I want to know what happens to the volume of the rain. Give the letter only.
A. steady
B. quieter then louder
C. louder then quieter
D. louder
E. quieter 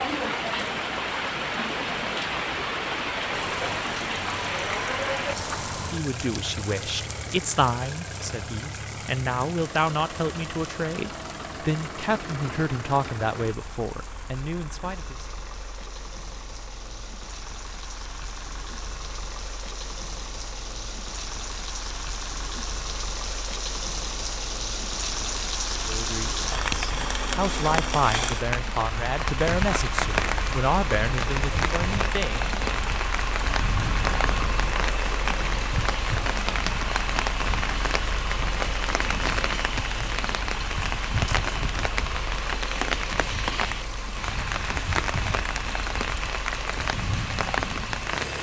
B.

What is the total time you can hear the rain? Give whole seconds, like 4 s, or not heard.
48 s.